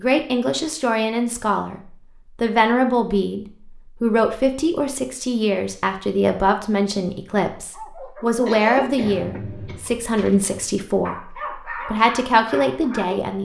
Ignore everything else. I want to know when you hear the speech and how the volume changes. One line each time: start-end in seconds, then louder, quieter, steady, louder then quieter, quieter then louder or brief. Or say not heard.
0.0-13.4 steady.